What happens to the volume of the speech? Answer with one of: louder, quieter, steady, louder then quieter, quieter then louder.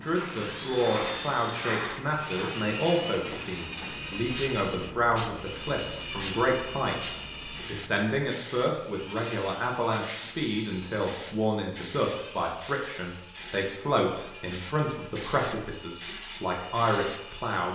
steady.